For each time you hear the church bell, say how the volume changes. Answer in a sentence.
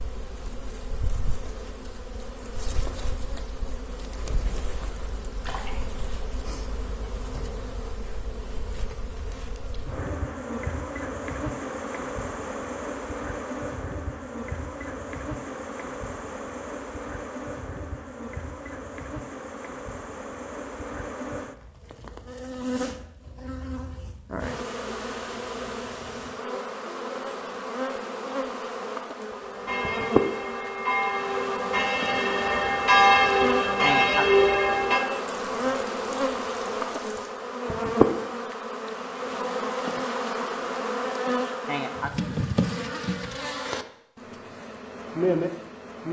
The church bell can be heard from 29.4 to 35.0 s, getting louder.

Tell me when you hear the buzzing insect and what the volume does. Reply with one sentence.
The buzzing insect can be heard from 0.0 to 46.0 s, getting louder.